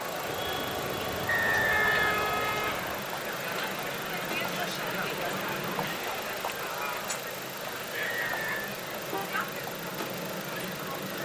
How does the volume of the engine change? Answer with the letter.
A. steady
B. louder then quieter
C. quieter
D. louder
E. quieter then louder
A.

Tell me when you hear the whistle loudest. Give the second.
2 s.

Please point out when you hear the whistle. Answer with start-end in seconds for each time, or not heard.
1.2-3.0, 8.2-8.7.